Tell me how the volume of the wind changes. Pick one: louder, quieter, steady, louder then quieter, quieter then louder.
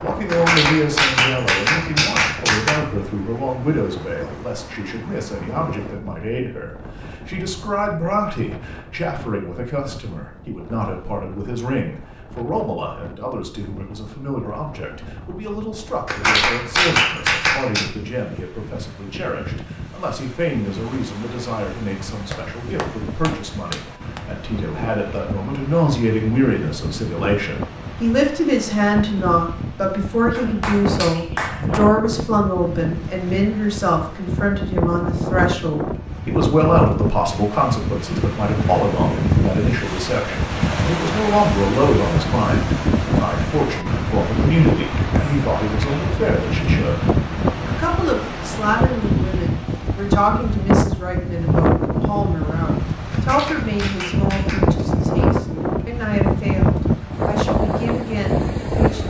louder.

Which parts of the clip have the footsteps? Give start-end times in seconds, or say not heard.
not heard.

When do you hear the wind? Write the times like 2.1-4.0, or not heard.
0.0-59.0.